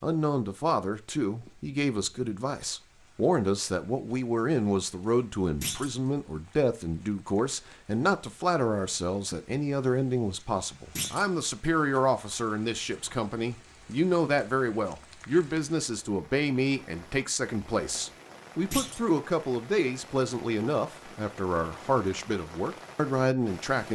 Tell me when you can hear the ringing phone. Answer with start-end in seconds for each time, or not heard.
not heard.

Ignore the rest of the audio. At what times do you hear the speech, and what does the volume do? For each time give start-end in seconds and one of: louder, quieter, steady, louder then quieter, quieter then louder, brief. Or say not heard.
0.0-23.9 steady.